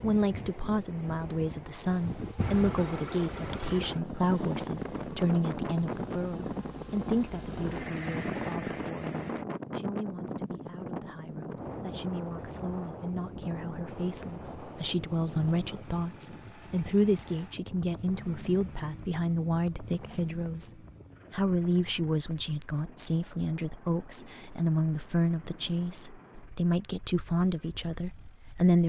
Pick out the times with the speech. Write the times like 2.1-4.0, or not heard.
0.0-20.7, 21.3-28.8.